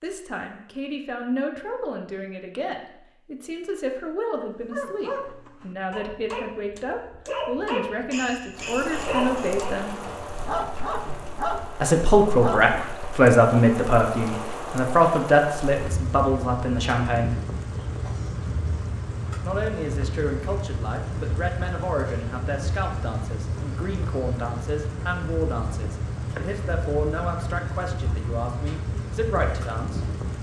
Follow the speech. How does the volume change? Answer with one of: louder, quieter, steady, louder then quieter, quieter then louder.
louder then quieter.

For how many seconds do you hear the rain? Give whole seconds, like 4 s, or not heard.
22 s.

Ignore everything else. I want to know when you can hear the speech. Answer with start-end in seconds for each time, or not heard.
0.0-9.9, 11.8-17.4, 19.4-30.0.